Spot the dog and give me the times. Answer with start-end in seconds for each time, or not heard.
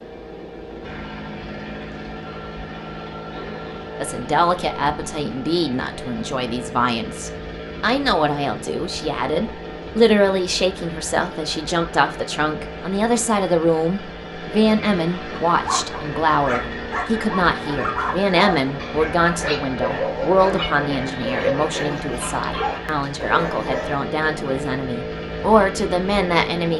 15.5-24.0.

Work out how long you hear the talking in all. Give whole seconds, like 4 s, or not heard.
23 s.